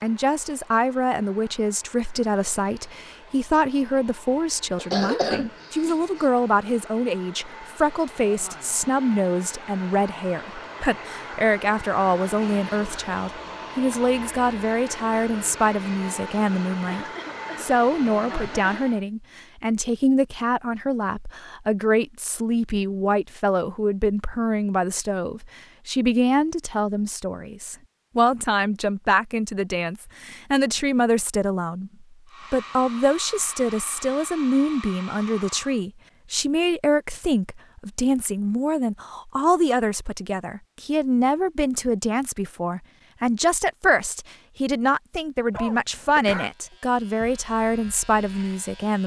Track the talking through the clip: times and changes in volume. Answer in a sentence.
The talking can be heard from 0.0 to 49.0 s, at a steady volume.